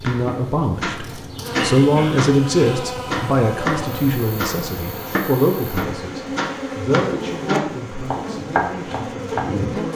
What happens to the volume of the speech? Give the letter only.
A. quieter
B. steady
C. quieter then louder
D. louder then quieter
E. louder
A.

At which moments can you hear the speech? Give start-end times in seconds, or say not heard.
0.0-9.9.